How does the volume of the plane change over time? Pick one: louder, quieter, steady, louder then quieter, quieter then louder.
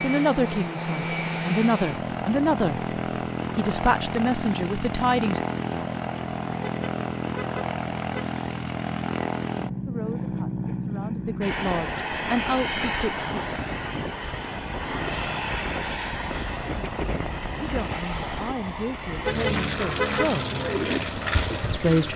steady.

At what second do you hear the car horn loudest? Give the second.
20 s.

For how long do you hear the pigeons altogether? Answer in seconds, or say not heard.
2 s.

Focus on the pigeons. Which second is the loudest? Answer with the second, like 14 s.
21 s.